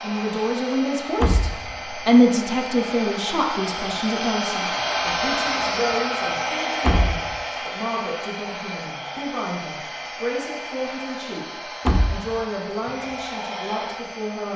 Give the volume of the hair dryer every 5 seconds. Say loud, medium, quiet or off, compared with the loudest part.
loud, loud, medium.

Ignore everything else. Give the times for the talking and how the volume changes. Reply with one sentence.
You can hear the talking from 0.0 to 11.4 s, getting quieter; and briefly from 12.1 to 14.5 s.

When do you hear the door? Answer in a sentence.
The door can be heard from 1.2 to 1.8 s, from 6.8 to 7.3 s and from 11.8 to 12.3 s.